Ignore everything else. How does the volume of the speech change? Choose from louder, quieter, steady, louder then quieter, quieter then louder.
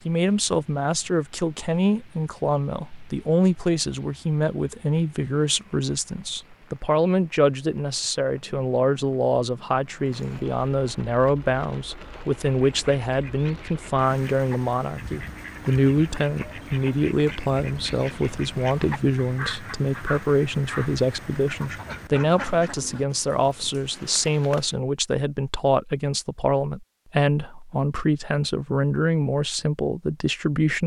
steady.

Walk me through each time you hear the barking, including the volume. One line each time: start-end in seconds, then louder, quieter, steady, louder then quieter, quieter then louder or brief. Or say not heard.
not heard.